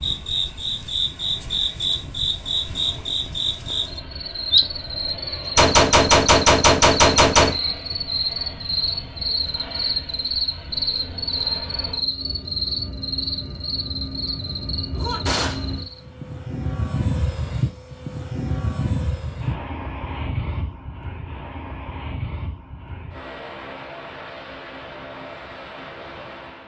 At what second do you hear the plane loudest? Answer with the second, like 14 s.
17 s.